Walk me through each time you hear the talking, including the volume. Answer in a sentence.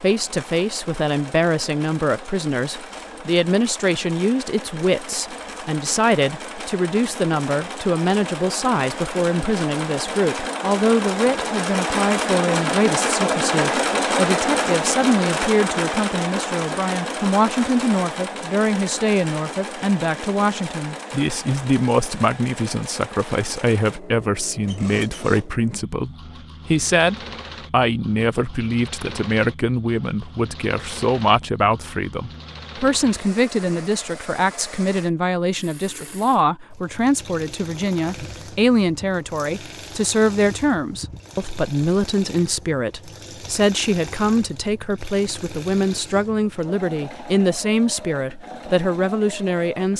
You can hear the talking from 0.0 to 49.9 s, at a steady volume.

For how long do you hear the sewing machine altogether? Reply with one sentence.
The sewing machine can be heard for 50 seconds in total.